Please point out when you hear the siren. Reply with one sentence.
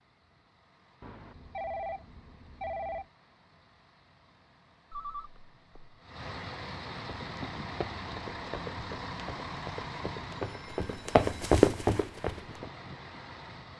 You can't hear the siren here.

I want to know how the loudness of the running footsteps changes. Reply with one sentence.
The volume of the running footsteps goes up.